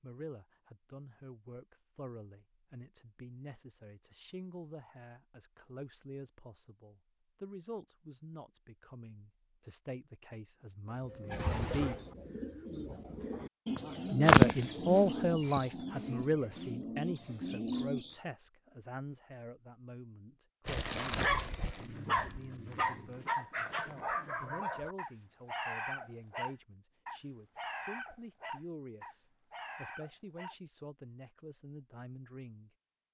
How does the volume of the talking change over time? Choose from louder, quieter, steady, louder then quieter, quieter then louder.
louder then quieter.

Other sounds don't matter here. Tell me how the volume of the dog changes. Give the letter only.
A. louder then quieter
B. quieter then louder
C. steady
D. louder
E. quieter
E.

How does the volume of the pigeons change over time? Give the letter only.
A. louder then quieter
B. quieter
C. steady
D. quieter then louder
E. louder
A.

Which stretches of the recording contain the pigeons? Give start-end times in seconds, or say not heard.
11.1-18.1.